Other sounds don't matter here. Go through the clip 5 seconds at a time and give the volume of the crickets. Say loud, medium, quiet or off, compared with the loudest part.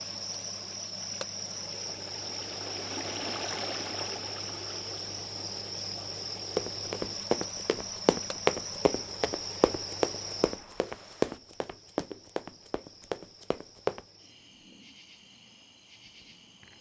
loud, loud, medium, quiet.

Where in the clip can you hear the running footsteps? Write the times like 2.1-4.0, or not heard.
6.5-14.0.